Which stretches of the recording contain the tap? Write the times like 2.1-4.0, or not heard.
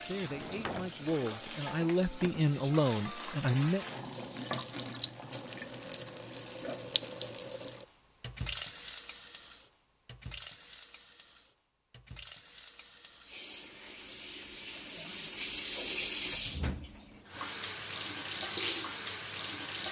0.0-19.8.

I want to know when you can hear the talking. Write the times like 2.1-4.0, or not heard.
0.0-3.9.